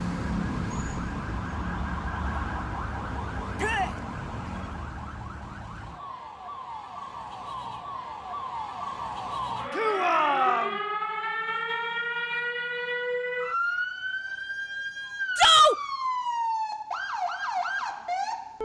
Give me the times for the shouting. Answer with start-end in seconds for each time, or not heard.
3.5-4.0, 9.7-10.8, 15.3-15.8.